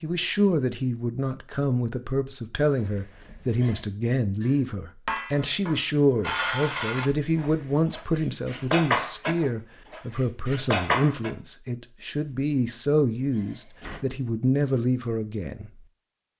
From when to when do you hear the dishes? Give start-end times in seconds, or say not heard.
4.4-11.3.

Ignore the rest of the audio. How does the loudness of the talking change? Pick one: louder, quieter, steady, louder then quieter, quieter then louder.
steady.